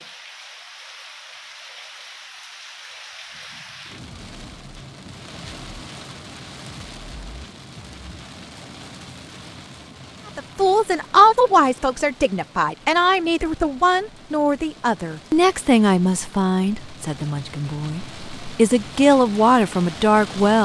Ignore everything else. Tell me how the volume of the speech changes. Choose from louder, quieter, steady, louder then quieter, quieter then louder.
quieter then louder.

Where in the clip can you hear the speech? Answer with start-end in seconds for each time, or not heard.
10.3-20.5.